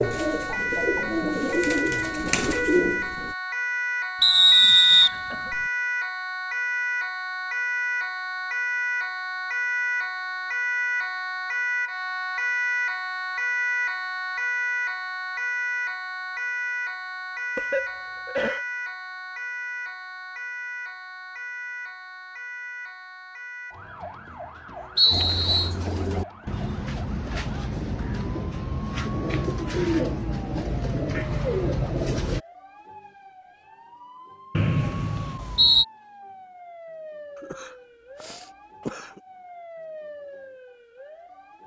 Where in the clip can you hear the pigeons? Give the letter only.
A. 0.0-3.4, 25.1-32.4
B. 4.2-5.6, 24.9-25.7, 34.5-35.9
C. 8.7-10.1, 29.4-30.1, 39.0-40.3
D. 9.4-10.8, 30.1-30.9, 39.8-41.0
A.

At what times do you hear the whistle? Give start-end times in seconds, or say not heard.
4.2-5.6, 24.9-25.7, 34.5-35.9.